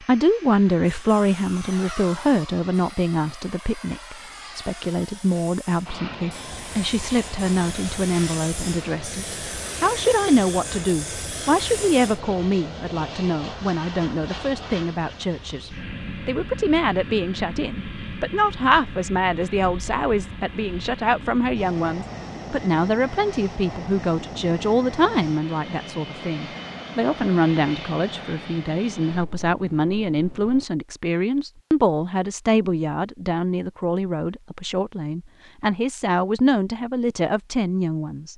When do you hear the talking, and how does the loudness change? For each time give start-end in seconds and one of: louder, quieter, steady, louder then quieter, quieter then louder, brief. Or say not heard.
0.0-38.3 steady.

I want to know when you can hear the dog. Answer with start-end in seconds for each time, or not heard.
not heard.